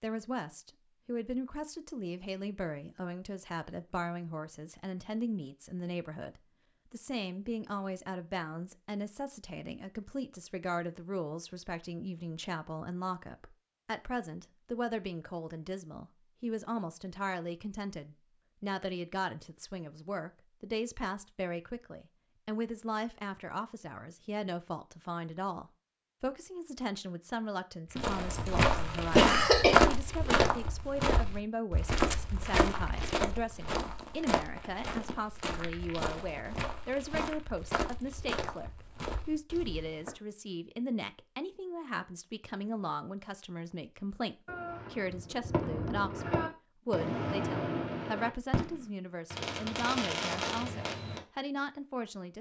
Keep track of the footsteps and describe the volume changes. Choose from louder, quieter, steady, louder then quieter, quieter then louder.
quieter.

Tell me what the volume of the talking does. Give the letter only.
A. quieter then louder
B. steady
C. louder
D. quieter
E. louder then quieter
B.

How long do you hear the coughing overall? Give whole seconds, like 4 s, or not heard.
2 s.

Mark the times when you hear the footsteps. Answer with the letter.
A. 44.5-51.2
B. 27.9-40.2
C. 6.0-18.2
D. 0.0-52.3
B.